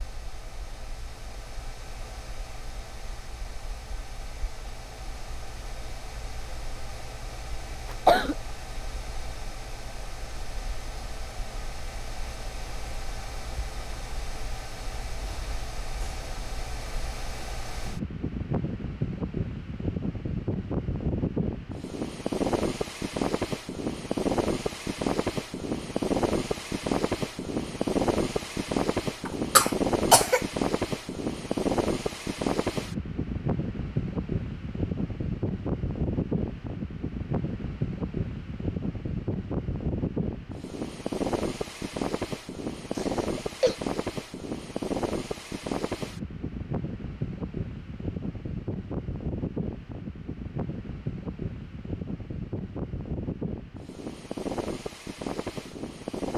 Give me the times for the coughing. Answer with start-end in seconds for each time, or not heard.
7.9-8.3, 29.2-30.4, 43.0-43.8.